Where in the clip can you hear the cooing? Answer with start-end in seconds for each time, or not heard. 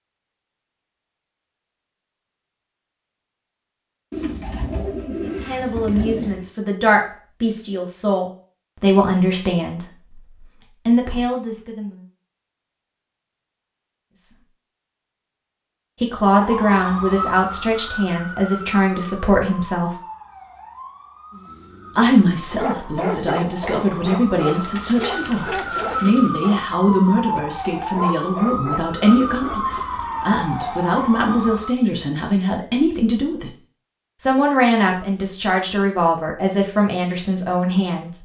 4.1-6.5, 24.4-26.3.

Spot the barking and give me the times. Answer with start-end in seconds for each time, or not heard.
21.3-29.9.